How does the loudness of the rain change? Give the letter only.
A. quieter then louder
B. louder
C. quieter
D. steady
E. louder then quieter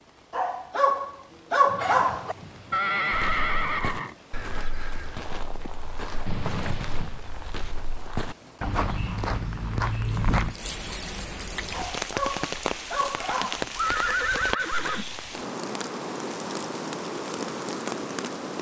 B.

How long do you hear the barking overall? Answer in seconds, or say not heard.
4 s.